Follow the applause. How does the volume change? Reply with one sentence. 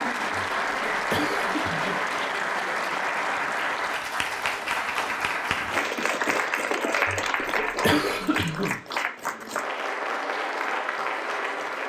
The loudness of the applause stays about the same.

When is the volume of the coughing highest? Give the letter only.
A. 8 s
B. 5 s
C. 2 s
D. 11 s
A.